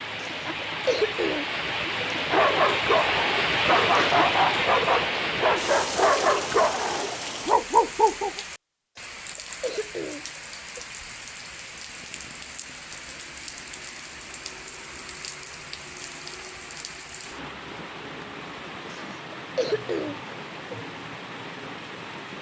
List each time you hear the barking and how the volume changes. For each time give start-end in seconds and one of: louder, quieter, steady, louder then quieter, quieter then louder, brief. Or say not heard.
2.1-8.4 steady.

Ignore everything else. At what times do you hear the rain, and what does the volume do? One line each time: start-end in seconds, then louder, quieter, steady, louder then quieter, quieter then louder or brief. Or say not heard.
0.0-22.3 quieter.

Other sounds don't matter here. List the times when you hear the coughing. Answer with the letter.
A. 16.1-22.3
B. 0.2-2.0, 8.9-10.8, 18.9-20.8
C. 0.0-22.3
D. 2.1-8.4
B.